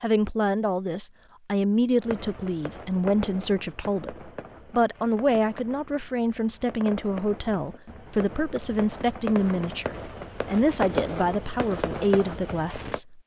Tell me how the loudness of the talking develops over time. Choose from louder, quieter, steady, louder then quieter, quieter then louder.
steady.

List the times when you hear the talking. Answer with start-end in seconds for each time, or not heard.
0.0-13.2.